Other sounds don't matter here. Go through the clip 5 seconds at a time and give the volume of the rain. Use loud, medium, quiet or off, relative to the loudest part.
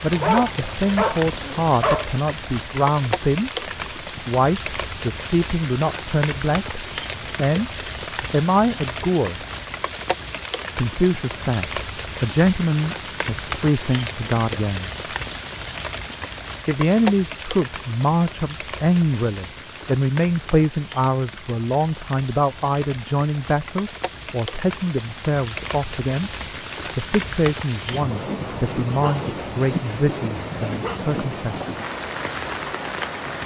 loud, loud, loud, loud, medium, loud, loud.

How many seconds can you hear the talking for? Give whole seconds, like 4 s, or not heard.
28 s.